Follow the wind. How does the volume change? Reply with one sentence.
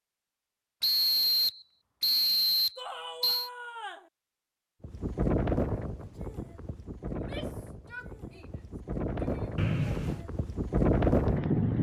The loudness of the wind goes down, then up.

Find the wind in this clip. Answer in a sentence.
You can hear the wind from 4.8 to 11.7 s.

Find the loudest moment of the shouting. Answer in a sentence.
The volume of the shouting peaks at 3 seconds.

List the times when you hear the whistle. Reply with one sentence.
The whistle can be heard from 0.8 to 3.5 s and from 9.6 to 10.2 s.